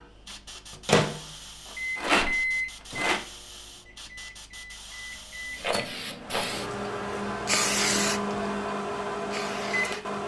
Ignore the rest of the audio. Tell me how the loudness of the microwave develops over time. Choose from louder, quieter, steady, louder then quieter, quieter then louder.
quieter then louder.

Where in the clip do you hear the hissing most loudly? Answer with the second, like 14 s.
8 s.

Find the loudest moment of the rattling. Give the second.
2 s.